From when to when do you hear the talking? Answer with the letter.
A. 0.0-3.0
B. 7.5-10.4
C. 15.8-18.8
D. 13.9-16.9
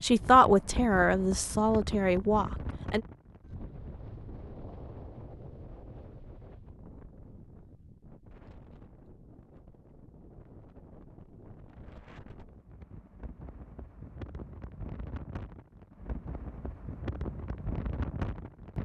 A.